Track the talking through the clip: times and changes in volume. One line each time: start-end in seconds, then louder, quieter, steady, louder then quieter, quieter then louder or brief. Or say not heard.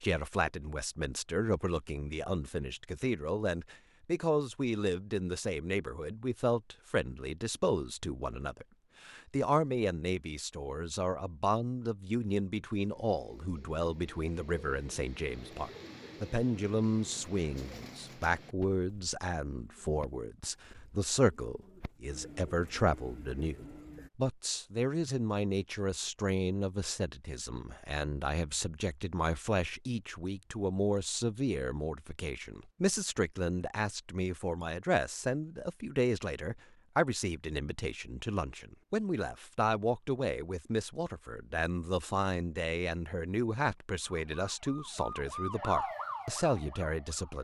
0.0-47.3 steady.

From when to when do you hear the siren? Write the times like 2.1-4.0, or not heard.
44.0-47.3.